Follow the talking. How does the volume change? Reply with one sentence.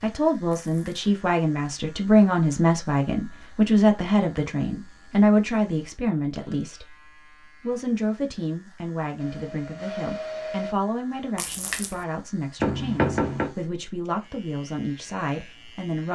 The volume of the talking goes down.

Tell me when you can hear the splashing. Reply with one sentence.
The splashing can be heard from 0.5 to 1.1 s and from 11.3 to 12.1 s.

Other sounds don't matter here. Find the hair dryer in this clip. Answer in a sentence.
The hair dryer can be heard from 9.2 to 10.8 s.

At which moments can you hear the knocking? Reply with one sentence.
The knocking can be heard from 12.6 to 13.5 s.